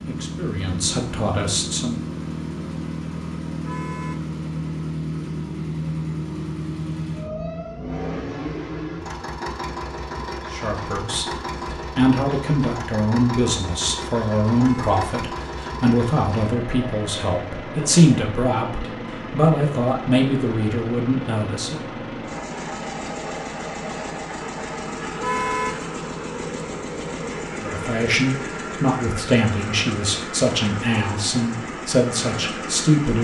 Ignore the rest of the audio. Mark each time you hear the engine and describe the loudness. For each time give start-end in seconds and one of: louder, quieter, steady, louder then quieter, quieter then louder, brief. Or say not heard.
0.0-33.1 steady.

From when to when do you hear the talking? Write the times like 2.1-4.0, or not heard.
0.1-2.0, 10.5-21.8, 27.6-33.1.